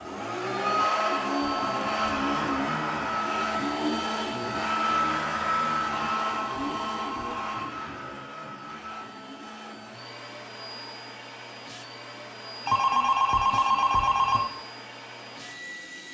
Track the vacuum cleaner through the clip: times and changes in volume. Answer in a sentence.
The vacuum cleaner can be heard from 0.0 to 16.0 s, getting quieter.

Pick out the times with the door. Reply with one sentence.
You can't hear the door here.